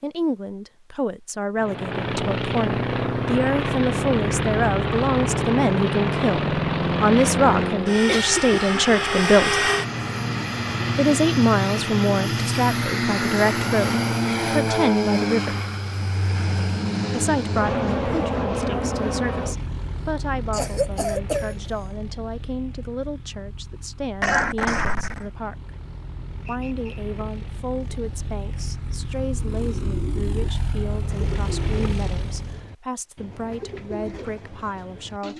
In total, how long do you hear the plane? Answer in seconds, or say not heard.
31 s.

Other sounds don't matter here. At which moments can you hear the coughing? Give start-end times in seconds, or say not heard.
8.1-8.6, 20.5-21.7, 24.2-25.3.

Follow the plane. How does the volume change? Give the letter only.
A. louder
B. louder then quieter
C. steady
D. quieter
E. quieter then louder
E.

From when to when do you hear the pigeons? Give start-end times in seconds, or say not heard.
29.4-35.3.